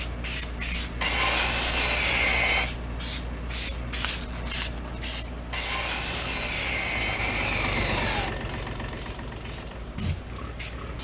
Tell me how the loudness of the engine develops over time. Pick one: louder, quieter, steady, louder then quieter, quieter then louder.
louder then quieter.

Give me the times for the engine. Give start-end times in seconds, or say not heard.
6.0-10.9.